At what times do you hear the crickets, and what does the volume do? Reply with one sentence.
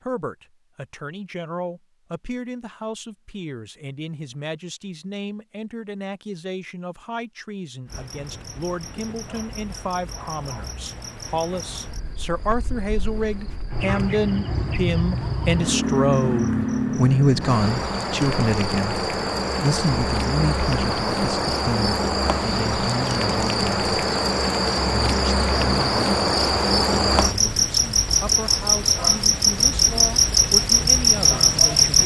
You can hear the crickets from 7.8 to 32.0 s, getting louder.